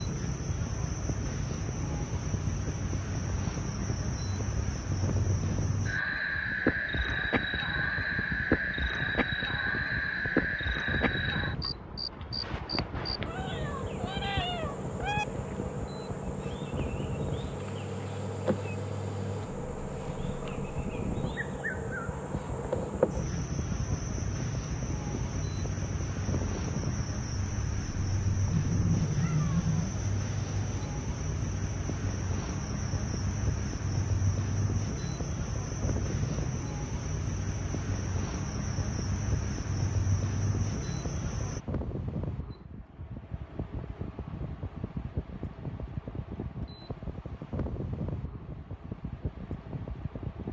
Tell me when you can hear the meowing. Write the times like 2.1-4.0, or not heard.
13.2-15.2, 28.5-29.9.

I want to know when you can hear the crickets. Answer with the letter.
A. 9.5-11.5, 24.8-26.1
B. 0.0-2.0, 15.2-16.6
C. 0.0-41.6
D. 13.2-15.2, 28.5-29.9
C.